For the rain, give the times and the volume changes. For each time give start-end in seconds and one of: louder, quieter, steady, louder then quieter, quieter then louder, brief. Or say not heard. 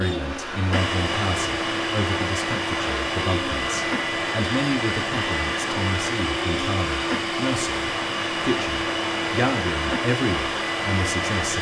0.0-11.5 steady.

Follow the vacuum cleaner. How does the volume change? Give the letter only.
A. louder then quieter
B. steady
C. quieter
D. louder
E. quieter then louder
B.